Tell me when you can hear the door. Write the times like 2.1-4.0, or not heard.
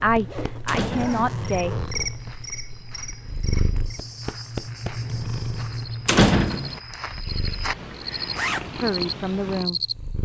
0.7-1.2, 6.0-6.8.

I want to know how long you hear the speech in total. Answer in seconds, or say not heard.
3 s.